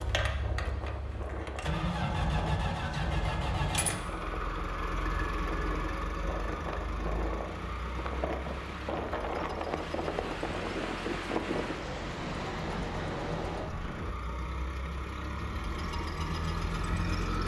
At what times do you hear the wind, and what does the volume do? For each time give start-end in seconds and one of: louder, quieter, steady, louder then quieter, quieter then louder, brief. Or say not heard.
0.0-14.2 louder.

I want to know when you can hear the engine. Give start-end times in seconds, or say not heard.
0.0-17.4.